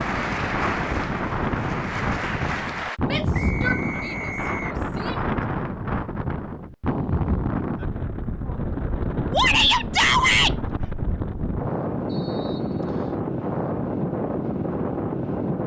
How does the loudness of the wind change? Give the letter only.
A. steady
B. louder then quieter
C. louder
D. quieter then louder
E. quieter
A.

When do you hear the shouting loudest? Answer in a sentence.
The loudest moment of the shouting is at 10 seconds.